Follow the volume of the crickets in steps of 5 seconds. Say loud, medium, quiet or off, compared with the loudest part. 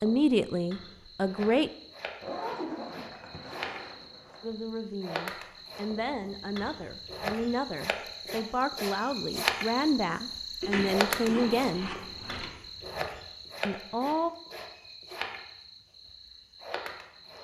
medium, loud, loud, medium.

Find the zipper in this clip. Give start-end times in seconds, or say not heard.
2.2-4.5, 10.6-12.5.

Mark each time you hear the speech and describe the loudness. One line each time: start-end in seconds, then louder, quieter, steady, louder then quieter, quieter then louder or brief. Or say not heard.
0.0-1.7 brief
4.4-11.9 louder
13.7-14.3 brief.